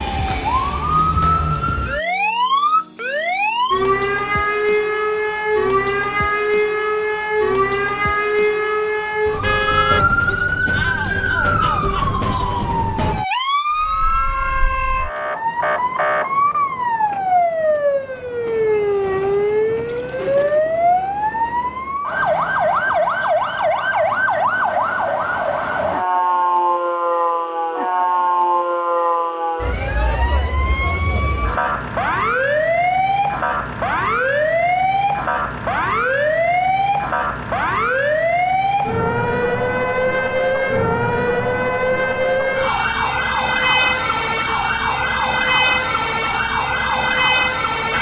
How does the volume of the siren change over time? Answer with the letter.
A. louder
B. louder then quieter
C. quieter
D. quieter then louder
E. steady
E.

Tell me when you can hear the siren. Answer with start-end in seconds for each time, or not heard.
0.0-47.9.